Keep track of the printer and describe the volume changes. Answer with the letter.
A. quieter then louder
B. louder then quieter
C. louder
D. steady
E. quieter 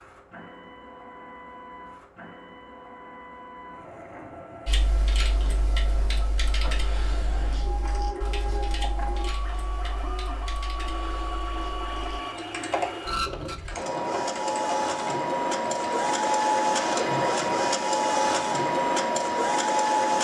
C.